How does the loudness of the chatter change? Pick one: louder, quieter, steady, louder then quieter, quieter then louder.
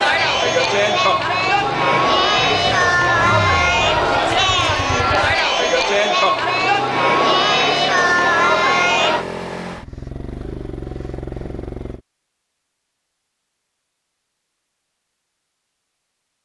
steady.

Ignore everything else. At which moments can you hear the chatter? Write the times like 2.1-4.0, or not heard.
0.0-9.2.